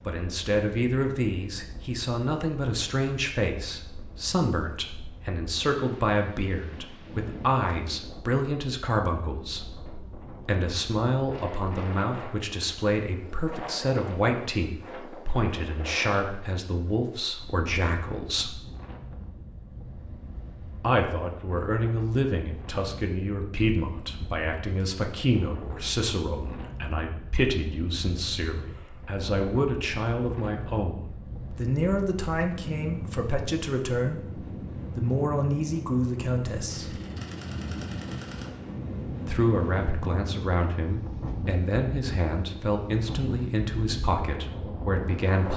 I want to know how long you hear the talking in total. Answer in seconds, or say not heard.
41 s.